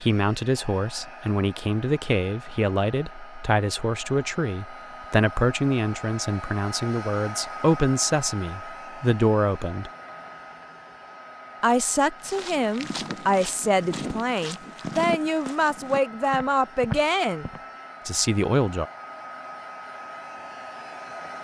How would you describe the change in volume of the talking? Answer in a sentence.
The loudness of the talking stays about the same.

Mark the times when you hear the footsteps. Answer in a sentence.
The footsteps can be heard from 12.2 to 17.6 s.